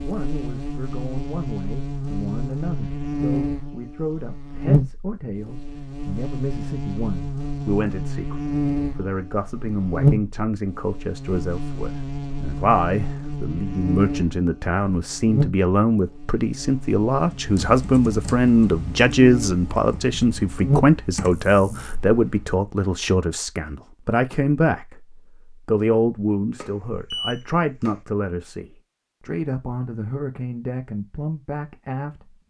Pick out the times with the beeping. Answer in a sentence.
The beeping can be heard from 26.6 to 28.0 s.